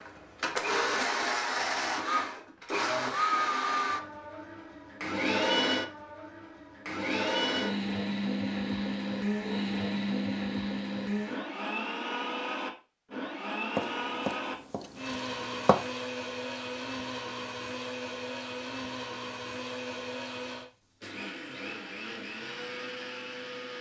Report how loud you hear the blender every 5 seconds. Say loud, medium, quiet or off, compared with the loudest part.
loud, loud, loud, medium, medium.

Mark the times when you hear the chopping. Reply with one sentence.
You can hear the chopping from 13.8 to 15.8 s.